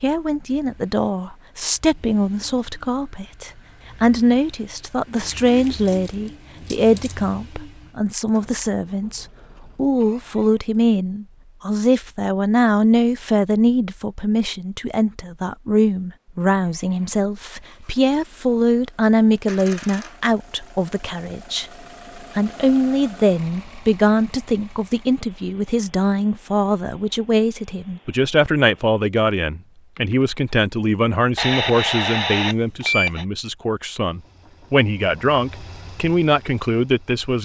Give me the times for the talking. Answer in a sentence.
The talking can be heard from 0.0 to 21.6 s and from 22.4 to 37.3 s.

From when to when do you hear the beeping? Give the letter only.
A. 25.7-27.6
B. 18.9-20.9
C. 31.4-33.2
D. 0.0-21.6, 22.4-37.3
C.